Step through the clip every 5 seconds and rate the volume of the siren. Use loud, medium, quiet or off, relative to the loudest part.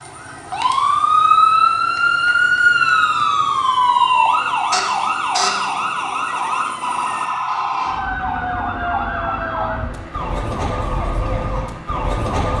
loud, medium, medium.